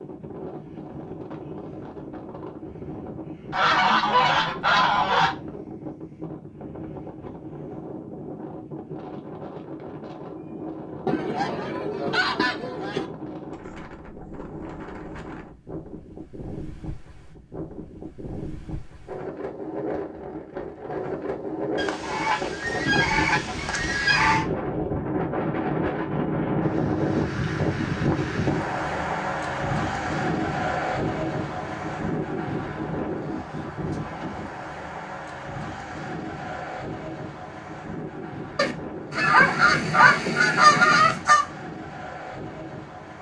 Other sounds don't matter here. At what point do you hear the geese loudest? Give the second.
41 s.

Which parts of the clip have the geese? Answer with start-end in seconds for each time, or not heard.
3.5-5.3, 11.1-13.1, 21.8-24.4, 38.5-41.5.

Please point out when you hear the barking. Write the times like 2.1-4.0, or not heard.
39.3-40.1.